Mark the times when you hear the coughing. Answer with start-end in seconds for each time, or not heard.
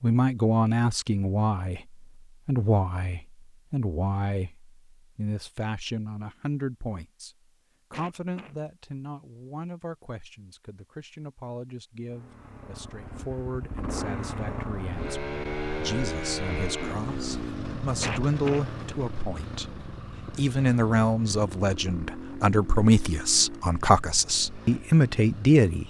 7.9-8.6, 18.0-18.6.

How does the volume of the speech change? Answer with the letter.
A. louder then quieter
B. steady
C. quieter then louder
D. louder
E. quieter
C.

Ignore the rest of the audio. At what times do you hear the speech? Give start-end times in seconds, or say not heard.
0.0-7.3, 7.9-25.8.